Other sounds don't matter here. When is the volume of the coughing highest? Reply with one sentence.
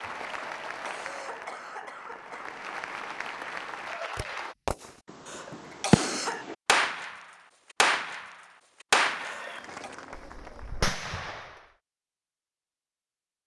The volume of the coughing peaks at 6 seconds.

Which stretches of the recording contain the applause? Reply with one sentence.
The applause can be heard from 0.0 to 4.5 s and from 9.1 to 11.0 s.